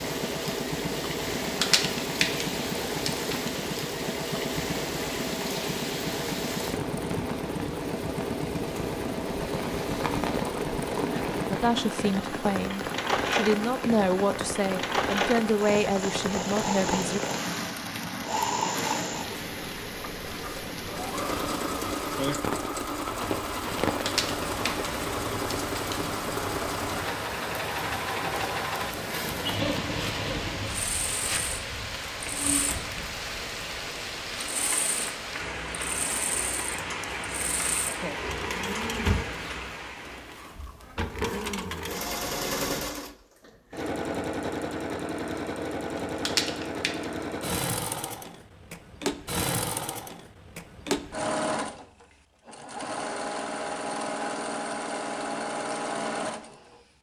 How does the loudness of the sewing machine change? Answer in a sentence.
The volume of the sewing machine stays about the same.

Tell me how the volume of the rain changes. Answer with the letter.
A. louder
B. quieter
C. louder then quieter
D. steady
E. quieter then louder
D.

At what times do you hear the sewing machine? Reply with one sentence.
You can hear the sewing machine from 0.0 to 56.8 s.